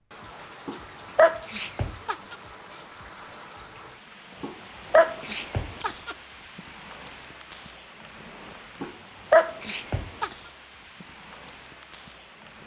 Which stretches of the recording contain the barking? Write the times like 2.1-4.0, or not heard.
0.7-2.4, 4.4-6.2, 8.8-10.3.